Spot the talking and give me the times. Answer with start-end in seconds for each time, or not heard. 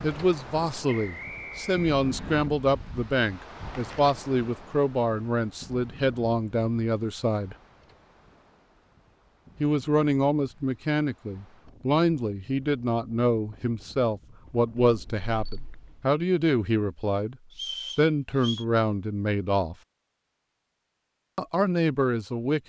0.0-7.5, 9.6-17.4, 17.9-19.8, 21.4-22.6.